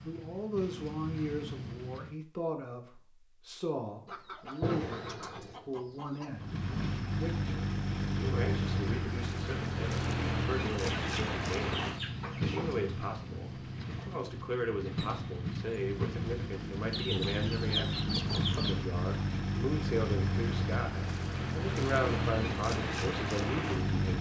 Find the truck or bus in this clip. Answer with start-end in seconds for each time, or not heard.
0.0-2.1, 6.3-24.1.